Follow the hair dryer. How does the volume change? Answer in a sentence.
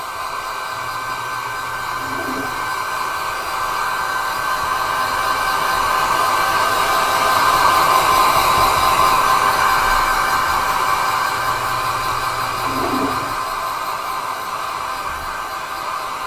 The volume of the hair dryer goes up, then down.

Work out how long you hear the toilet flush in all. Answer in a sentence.
You can hear the toilet flush for 4 seconds altogether.